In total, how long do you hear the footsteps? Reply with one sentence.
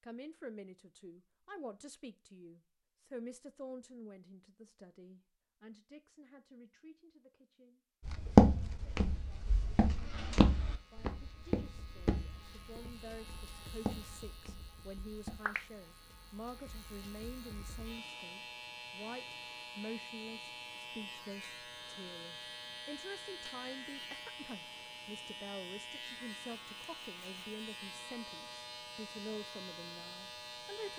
You can hear the footsteps for 7 seconds altogether.